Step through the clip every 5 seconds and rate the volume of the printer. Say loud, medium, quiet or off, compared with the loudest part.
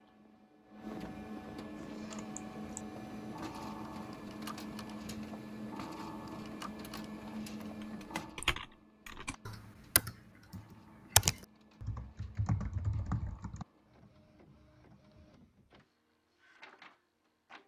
loud, loud, quiet, quiet.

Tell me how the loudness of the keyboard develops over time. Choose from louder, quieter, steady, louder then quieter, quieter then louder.
louder then quieter.